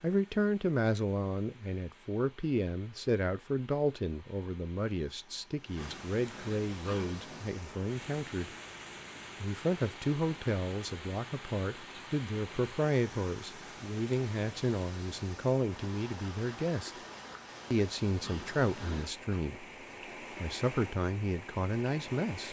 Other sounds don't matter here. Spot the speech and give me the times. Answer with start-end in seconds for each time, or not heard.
0.0-8.5, 9.4-16.9, 17.7-19.7, 20.4-22.4.